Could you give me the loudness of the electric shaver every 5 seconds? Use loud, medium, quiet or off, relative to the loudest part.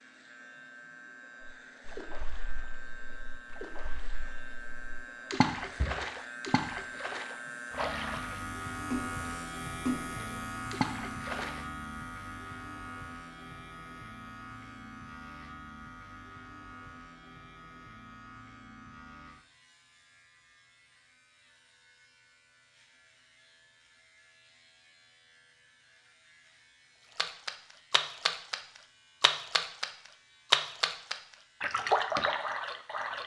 medium, loud, loud, medium, quiet, quiet, quiet.